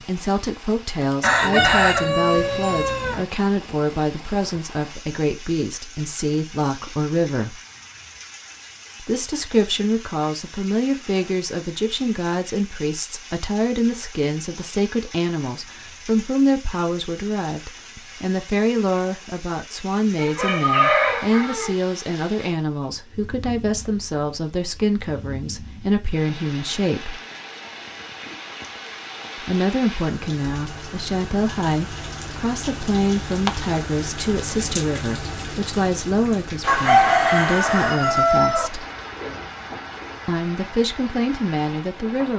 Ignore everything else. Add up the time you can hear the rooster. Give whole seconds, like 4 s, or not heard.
6 s.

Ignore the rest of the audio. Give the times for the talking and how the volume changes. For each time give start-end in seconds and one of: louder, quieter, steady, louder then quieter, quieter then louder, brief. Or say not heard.
0.1-7.6 steady
9.0-27.2 steady
29.4-38.9 steady
40.2-42.3 brief.